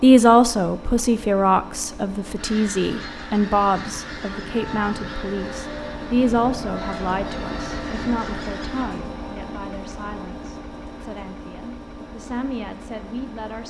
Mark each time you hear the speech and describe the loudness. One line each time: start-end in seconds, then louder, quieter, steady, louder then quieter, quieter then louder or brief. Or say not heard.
0.0-13.6 quieter.